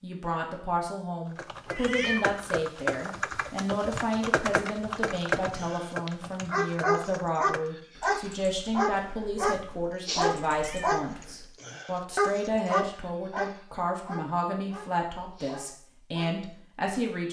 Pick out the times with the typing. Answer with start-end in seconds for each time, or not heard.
1.2-11.6.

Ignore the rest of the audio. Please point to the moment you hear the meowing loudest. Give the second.
2 s.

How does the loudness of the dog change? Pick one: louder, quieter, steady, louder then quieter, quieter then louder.
quieter.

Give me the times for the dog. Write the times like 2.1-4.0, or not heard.
5.2-16.6.